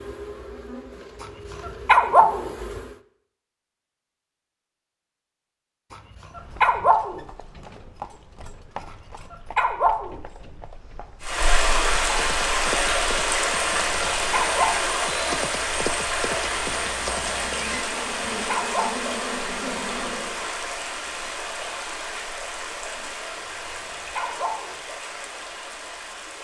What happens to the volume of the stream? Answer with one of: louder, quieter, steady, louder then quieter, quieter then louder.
quieter.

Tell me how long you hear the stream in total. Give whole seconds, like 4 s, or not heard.
15 s.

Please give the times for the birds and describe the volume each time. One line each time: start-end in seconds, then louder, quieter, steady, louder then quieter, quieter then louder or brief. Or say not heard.
not heard.